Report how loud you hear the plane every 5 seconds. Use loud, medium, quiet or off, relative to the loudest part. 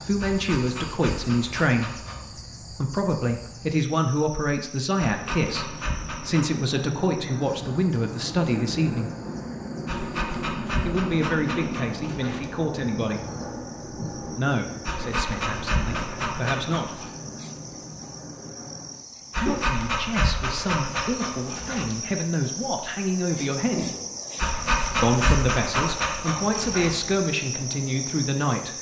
off, loud, loud, medium, off, off.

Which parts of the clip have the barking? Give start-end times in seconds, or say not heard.
0.2-2.2, 5.0-6.5, 9.8-12.6, 14.8-17.1, 19.3-22.0, 24.4-27.1.